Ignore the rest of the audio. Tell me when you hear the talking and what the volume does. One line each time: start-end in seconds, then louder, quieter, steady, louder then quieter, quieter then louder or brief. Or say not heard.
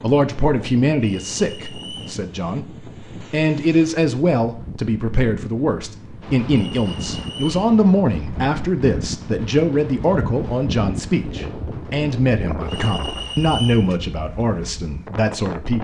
0.0-15.8 steady.